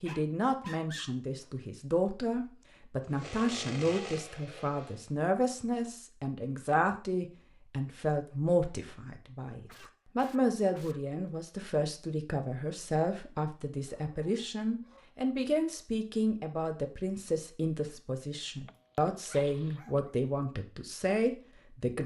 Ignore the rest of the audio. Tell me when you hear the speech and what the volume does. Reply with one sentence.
The speech can be heard from 0.0 to 22.0 s, at a steady volume.